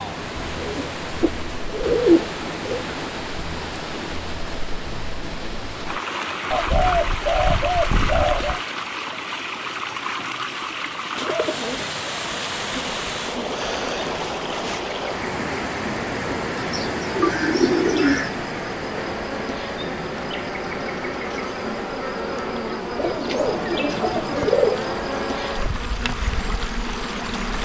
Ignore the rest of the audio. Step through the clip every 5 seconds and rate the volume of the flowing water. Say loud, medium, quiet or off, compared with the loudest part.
loud, loud, loud, loud, medium, medium.